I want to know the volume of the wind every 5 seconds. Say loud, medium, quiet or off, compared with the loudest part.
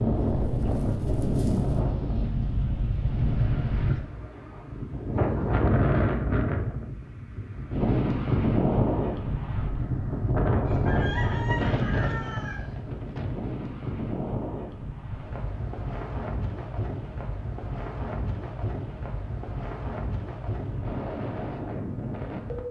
loud, loud, loud, medium, medium.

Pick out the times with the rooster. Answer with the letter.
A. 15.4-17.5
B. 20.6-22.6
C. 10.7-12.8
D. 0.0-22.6
C.